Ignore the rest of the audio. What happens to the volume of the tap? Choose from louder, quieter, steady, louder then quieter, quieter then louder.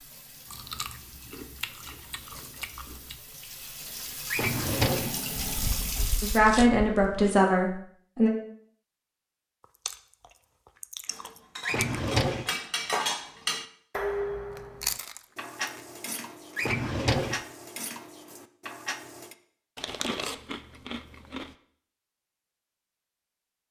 louder.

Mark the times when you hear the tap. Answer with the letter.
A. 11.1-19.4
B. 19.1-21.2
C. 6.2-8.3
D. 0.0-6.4
D.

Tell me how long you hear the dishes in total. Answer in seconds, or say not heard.
8 s.